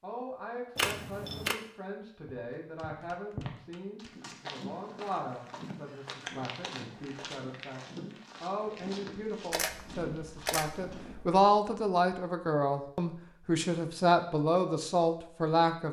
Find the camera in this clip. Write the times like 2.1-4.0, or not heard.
0.8-1.6, 9.5-11.2.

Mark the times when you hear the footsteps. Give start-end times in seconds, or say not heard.
2.2-11.2.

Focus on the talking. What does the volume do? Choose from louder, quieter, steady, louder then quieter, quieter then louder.
louder.